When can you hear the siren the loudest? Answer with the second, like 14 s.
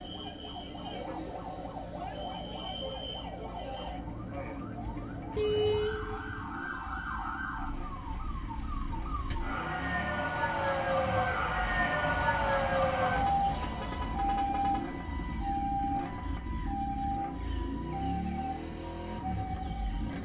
13 s.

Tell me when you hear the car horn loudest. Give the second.
6 s.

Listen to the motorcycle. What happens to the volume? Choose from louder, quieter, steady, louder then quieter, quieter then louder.
louder.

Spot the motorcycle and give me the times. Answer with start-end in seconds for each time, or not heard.
0.0-20.2.